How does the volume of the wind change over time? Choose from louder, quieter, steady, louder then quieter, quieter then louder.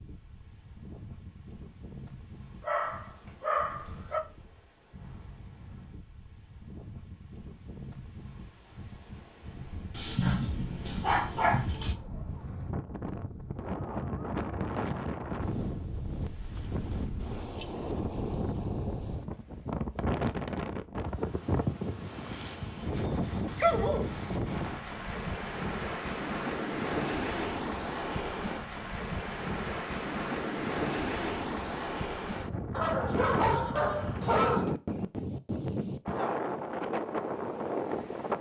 louder.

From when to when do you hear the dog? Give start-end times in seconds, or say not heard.
2.6-4.2, 9.9-11.9, 22.3-24.3, 32.7-34.8.